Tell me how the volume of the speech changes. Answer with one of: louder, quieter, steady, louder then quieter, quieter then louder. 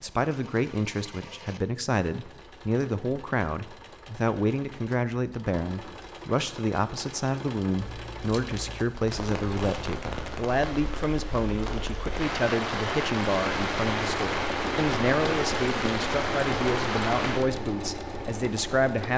steady.